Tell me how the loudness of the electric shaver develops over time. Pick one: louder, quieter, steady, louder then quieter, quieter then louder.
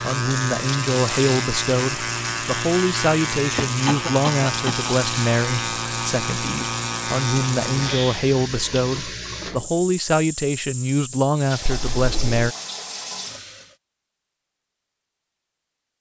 steady.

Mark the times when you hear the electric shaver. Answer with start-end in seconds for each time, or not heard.
0.0-8.2.